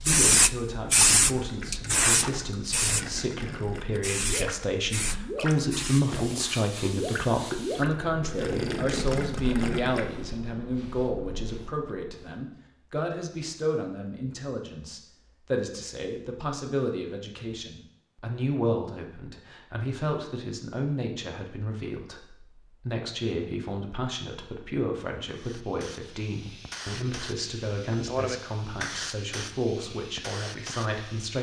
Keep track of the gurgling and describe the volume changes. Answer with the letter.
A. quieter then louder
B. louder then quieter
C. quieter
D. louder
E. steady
D.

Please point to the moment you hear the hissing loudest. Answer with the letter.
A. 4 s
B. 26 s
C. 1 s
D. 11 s
C.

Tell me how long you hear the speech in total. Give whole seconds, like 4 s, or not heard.
31 s.